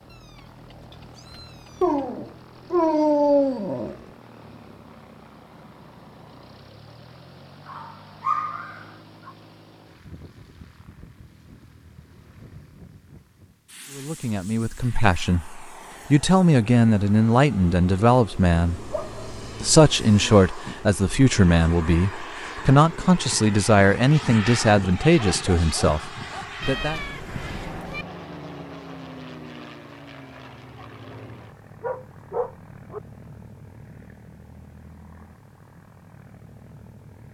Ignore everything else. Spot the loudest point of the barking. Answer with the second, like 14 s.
3 s.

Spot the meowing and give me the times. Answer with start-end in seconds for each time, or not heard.
0.1-2.1, 26.6-28.1.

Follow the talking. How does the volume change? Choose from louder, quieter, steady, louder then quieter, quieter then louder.
steady.